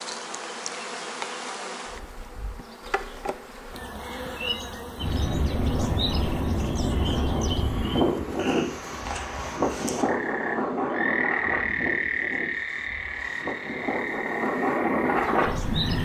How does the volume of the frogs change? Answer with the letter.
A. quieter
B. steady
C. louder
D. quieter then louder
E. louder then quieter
E.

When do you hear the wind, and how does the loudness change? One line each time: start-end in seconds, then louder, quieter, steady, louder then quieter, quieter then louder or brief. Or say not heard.
5.0-16.0 quieter then louder.